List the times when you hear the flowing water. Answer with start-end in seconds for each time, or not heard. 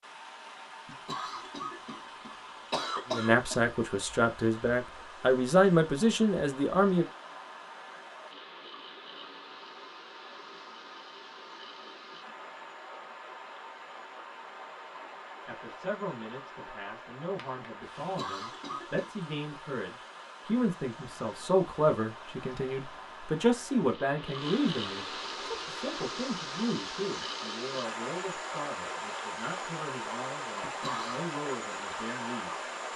0.0-32.9.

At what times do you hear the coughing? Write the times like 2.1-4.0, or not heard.
0.8-3.6, 17.9-19.1, 30.6-31.2.